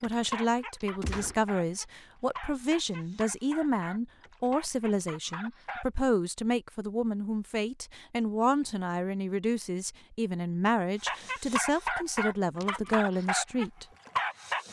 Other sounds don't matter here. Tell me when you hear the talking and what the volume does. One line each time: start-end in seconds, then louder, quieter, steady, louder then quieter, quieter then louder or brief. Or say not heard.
0.0-13.8 steady.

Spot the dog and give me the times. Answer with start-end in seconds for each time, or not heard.
0.0-5.8, 11.0-14.6.